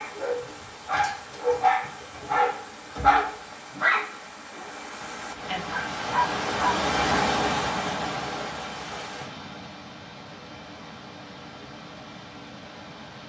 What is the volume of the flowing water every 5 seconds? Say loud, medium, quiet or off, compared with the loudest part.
quiet, loud, quiet.